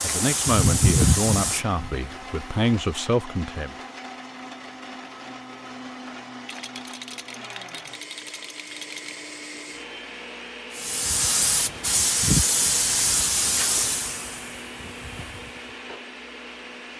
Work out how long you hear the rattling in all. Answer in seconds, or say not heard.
3 s.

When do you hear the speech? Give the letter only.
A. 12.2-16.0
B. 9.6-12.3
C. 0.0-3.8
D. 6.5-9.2
C.